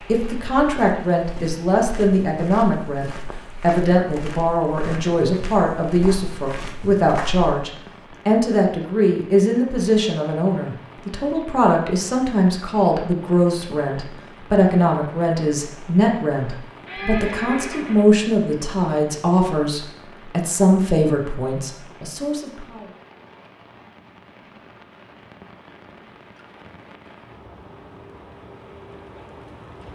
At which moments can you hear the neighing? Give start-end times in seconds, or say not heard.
16.9-18.1.